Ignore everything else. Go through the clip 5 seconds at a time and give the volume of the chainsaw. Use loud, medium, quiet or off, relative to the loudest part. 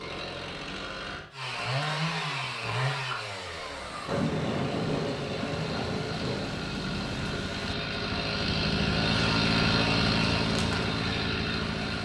medium, loud, loud.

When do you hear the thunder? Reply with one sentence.
You can hear the thunder from 4.0 to 7.8 s.